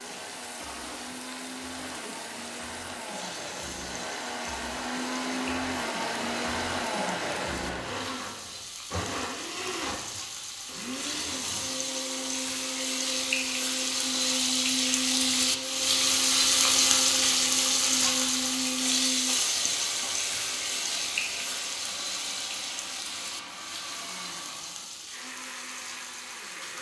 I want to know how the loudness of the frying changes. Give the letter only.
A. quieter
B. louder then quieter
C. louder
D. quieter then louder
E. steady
B.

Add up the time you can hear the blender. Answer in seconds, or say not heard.
27 s.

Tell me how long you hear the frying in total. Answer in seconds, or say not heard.
27 s.